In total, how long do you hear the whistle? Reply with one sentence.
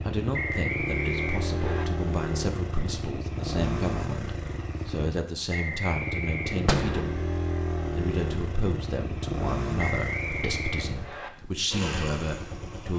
You can hear the whistle for 5 seconds altogether.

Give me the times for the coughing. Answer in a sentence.
You can't hear the coughing here.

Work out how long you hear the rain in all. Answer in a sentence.
You can't hear the rain here.